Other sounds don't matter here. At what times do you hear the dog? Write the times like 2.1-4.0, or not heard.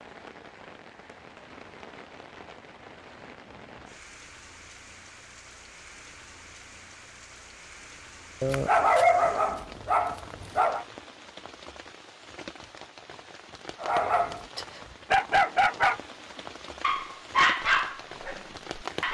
8.4-10.8, 13.8-16.0, 16.8-19.1.